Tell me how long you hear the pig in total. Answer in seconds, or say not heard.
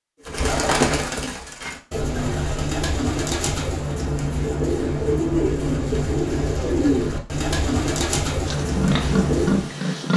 2 s.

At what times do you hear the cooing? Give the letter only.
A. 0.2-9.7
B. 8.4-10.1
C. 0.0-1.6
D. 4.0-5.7
A.